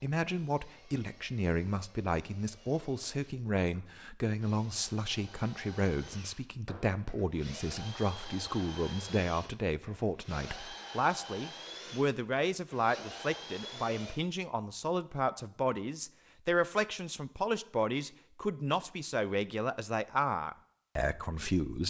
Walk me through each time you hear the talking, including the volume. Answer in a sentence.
You can hear the talking from 0.0 to 21.8 s, at a steady volume.